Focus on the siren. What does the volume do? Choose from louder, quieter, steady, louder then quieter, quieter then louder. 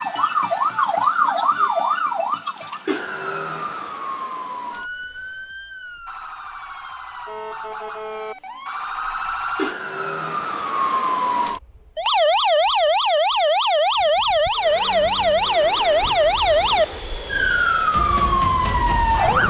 quieter then louder.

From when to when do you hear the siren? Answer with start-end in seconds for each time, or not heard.
0.0-19.4.